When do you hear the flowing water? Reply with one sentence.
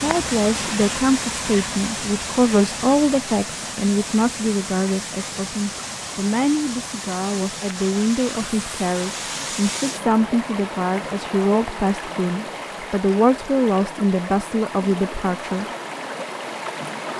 You can hear the flowing water from 0.0 to 17.1 s.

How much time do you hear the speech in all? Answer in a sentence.
You can hear the speech for 16 seconds altogether.